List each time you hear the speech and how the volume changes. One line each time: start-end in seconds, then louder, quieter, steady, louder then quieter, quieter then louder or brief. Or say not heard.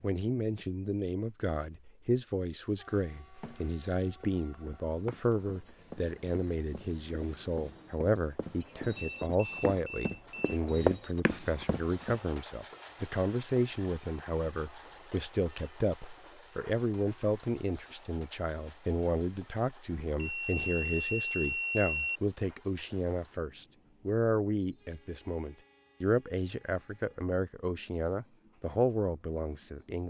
0.0-30.0 steady.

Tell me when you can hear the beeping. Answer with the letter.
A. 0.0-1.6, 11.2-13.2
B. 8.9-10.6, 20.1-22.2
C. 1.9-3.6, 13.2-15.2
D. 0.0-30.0
B.